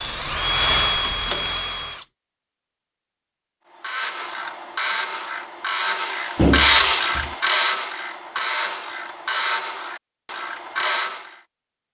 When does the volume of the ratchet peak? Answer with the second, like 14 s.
7 s.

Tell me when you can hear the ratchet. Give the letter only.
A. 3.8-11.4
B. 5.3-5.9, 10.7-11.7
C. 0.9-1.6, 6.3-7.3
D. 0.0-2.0
A.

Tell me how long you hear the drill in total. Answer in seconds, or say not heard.
2 s.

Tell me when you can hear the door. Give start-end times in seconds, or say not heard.
0.9-1.6, 6.3-7.3.